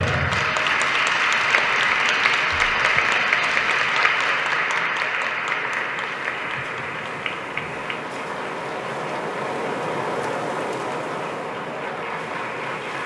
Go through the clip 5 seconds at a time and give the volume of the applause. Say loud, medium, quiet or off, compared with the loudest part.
loud, medium, quiet.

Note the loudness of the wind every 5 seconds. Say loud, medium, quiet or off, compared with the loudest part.
quiet, loud, loud.